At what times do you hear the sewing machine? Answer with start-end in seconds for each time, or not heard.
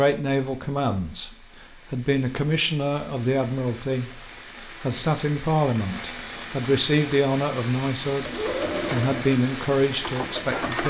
8.2-10.8.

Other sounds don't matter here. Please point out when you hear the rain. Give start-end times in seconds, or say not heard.
0.1-10.8.